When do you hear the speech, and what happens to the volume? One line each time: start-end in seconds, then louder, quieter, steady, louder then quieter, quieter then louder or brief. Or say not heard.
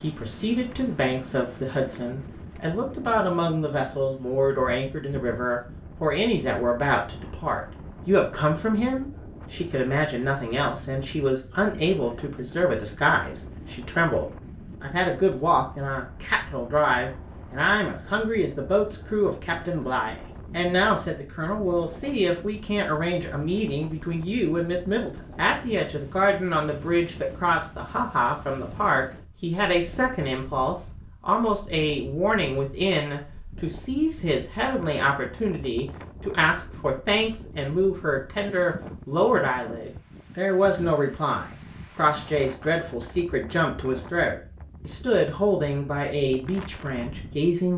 0.0-47.7 steady.